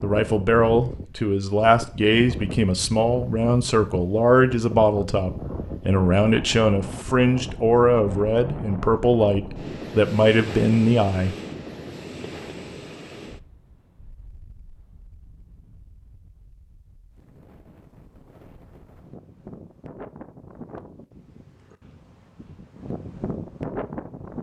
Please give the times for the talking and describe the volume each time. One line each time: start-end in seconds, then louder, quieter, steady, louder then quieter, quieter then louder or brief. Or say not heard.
0.0-11.3 steady.